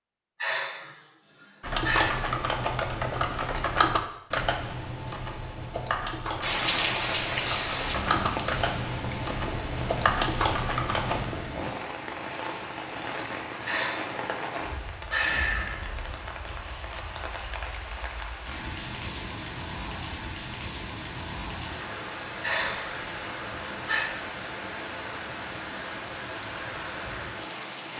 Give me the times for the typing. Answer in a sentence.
The typing can be heard from 1.6 to 11.2 s.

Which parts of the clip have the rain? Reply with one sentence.
The rain can be heard from 6.4 to 27.9 s.